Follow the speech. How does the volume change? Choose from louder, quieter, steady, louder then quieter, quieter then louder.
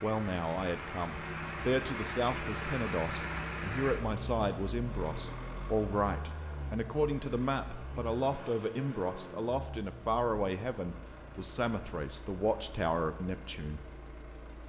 steady.